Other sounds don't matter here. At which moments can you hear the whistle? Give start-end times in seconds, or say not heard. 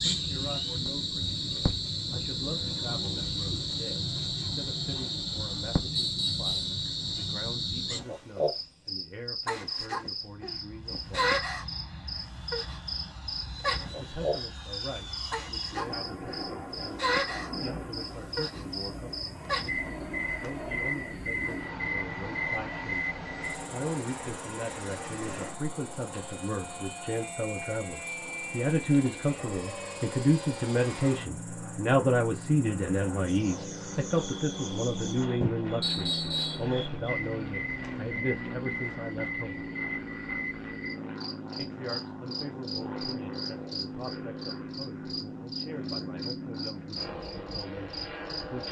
6.0-6.8, 35.8-36.6.